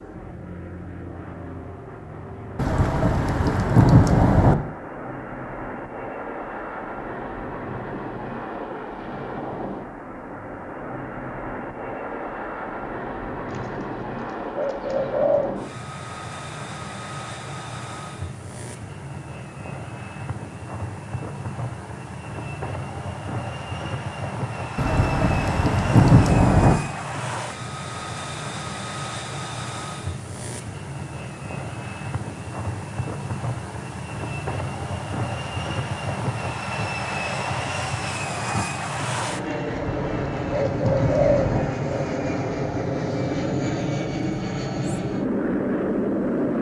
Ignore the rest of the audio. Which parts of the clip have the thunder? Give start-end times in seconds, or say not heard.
2.5-4.5, 24.8-26.8, 39.6-41.6.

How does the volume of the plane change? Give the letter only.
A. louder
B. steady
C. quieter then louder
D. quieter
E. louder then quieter
A.